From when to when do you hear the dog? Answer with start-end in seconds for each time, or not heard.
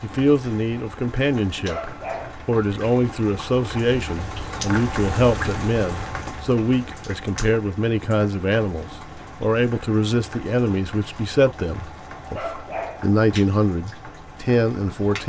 1.6-2.5, 12.3-13.1.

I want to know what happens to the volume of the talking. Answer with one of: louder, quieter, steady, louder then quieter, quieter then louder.
steady.